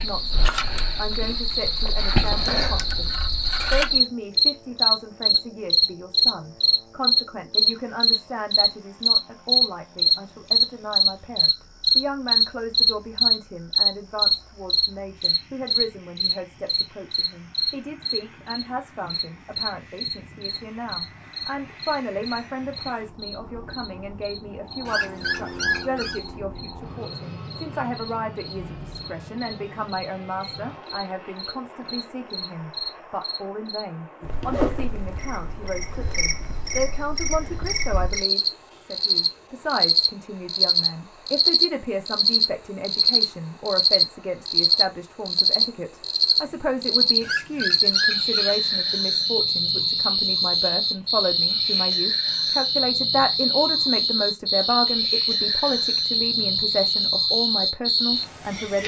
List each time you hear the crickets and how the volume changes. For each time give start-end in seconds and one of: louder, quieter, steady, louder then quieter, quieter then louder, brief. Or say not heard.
0.0-58.8 quieter then louder.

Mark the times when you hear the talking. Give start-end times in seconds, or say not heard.
0.0-58.8.